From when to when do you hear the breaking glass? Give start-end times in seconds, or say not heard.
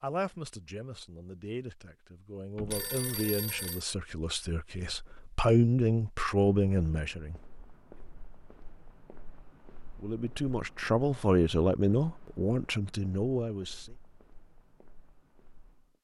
not heard.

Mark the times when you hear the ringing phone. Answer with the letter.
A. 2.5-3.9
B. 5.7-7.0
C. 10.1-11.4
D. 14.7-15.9
A.